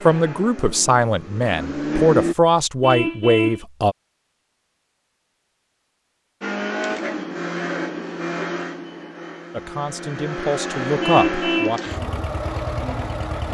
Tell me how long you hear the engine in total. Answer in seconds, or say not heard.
9 s.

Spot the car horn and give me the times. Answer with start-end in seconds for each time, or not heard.
2.8-3.6, 11.0-11.8.